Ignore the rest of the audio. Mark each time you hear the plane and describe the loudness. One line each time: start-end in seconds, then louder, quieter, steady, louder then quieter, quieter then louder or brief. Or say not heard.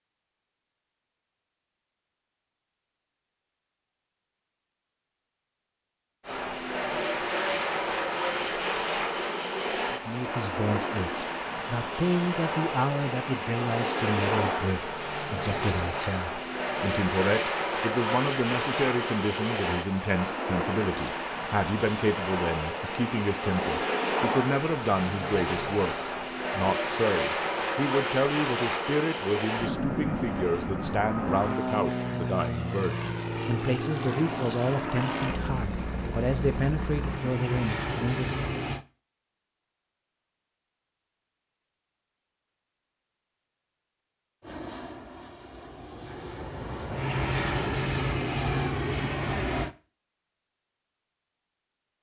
6.2-38.9 steady
44.4-49.8 louder.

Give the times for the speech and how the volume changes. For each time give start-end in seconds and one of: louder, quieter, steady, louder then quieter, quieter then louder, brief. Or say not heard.
9.9-38.3 steady.